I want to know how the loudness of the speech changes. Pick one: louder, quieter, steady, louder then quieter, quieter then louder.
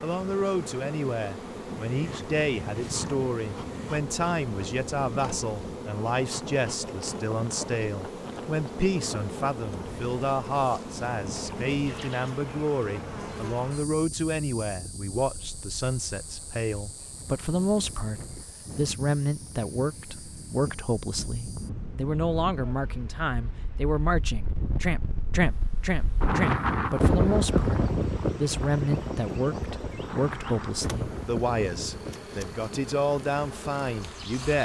steady.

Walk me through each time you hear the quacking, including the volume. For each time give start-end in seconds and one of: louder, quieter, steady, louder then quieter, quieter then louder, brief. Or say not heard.
not heard.